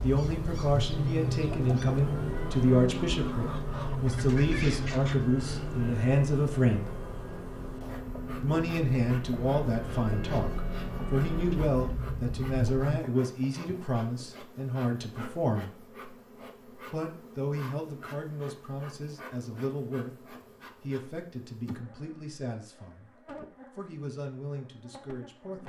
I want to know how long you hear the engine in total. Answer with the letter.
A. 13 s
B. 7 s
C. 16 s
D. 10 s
A.